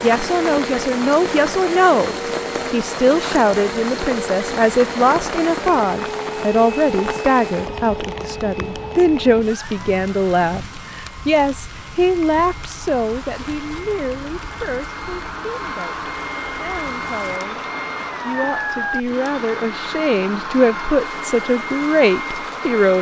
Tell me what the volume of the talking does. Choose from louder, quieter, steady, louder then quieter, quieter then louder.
quieter then louder.